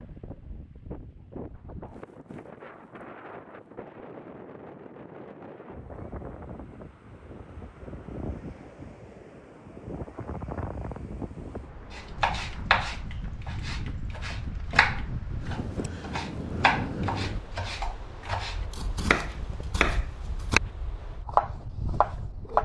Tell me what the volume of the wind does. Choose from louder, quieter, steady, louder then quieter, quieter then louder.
louder then quieter.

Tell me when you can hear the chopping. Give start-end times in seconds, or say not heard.
11.9-20.6, 21.2-22.6.